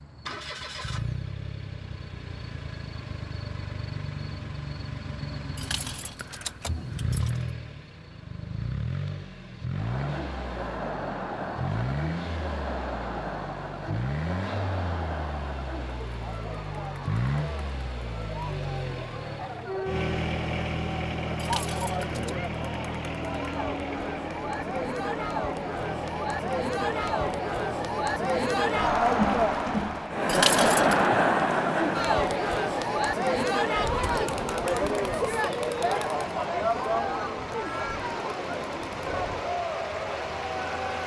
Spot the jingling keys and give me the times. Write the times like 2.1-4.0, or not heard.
5.5-7.5, 21.4-22.4, 30.2-31.1.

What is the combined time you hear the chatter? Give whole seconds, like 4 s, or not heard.
31 s.